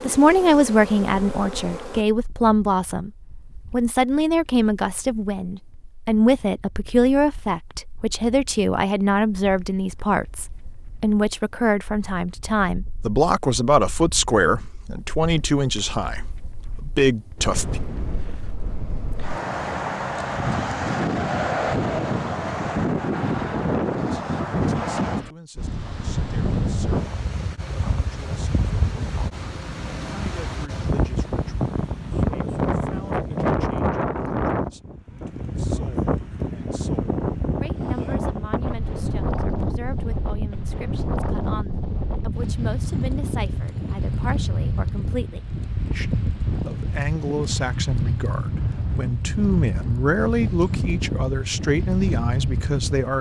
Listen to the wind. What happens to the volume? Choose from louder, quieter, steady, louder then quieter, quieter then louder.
louder.